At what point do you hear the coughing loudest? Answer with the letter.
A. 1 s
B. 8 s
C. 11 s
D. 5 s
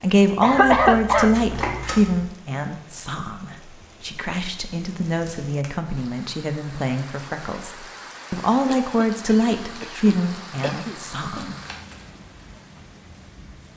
A.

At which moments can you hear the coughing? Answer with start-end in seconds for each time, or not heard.
0.3-1.6, 8.7-11.0.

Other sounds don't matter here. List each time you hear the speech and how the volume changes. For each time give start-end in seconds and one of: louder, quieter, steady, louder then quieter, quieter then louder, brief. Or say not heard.
0.0-11.6 quieter then louder.